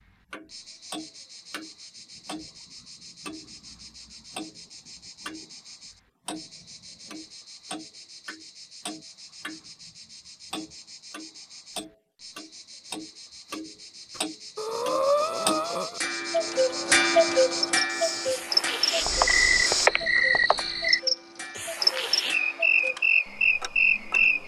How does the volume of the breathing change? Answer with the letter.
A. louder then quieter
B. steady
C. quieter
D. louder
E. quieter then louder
E.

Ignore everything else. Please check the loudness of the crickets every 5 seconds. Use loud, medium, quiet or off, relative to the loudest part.
quiet, quiet, quiet, loud, loud.